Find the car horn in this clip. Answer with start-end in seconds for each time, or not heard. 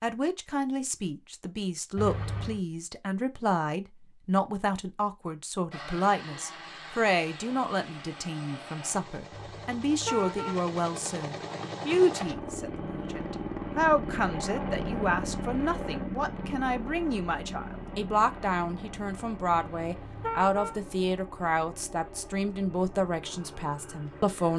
1.9-2.6, 9.3-10.7, 19.5-20.8.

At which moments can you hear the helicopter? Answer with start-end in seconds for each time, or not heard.
5.7-24.5.